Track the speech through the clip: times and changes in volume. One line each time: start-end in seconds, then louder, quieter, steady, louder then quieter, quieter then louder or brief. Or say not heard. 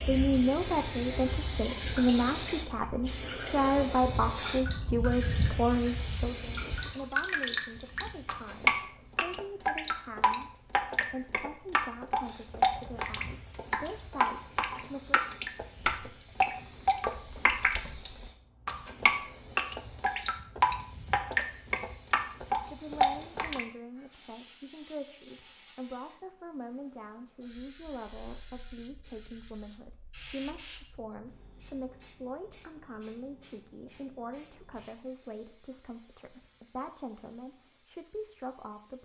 0.1-15.2 quieter
22.2-39.0 steady.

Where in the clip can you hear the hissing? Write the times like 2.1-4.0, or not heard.
0.0-8.8, 12.2-39.0.